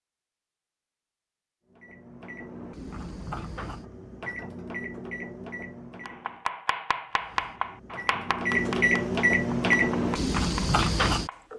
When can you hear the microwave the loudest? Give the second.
9 s.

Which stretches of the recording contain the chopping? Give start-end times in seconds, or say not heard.
6.0-11.4.